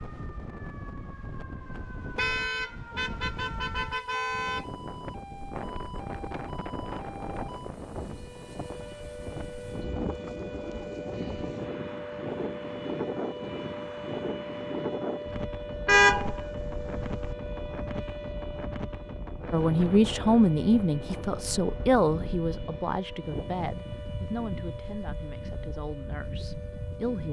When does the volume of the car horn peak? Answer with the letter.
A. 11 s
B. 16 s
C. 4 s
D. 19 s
B.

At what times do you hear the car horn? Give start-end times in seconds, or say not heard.
2.1-4.7, 15.8-17.4.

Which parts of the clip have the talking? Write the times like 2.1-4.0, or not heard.
19.5-27.2.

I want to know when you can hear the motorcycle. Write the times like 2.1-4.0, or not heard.
not heard.